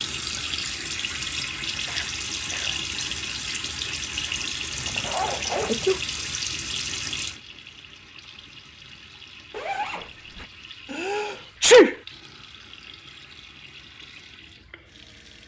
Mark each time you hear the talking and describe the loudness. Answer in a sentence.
You can't hear the talking here.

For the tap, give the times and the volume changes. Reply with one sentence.
You can hear the tap from 0.0 to 15.4 s, getting quieter.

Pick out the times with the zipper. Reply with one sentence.
You can hear the zipper from 4.8 to 6.0 s and from 9.5 to 10.4 s.